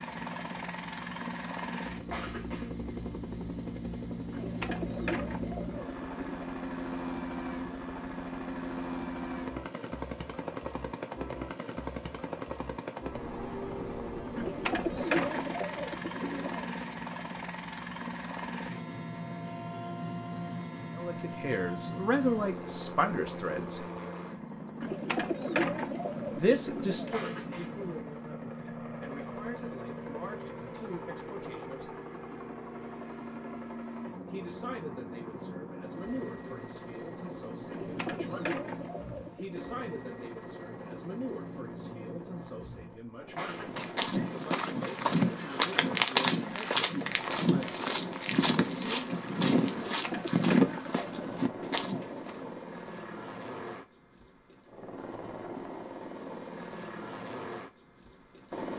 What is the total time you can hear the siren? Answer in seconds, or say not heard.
not heard.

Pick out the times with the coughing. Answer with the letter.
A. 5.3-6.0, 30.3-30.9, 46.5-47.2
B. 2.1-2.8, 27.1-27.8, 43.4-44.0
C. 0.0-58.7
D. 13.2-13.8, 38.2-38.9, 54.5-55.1
B.